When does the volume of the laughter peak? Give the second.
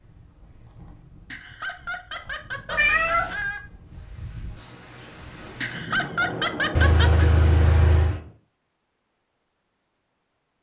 6 s.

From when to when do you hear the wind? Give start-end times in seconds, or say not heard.
0.0-8.3.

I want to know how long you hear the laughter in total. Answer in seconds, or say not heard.
4 s.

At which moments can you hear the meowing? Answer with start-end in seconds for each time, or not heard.
2.6-3.4, 6.8-8.2.